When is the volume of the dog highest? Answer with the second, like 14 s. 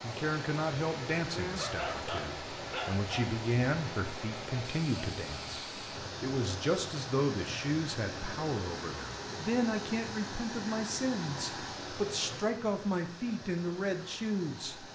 2 s.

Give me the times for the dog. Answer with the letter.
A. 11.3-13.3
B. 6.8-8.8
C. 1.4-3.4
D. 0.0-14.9
C.